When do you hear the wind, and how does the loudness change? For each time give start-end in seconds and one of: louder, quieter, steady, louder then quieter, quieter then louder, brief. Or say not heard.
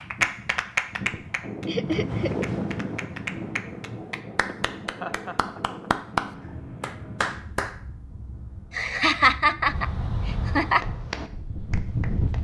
0.0-12.3 quieter then louder.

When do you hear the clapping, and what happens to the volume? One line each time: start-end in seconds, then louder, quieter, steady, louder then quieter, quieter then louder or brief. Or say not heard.
0.0-7.8 quieter then louder
10.7-12.3 brief.